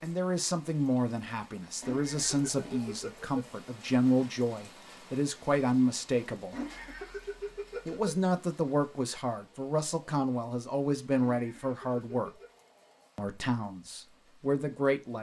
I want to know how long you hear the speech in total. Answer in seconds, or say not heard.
13 s.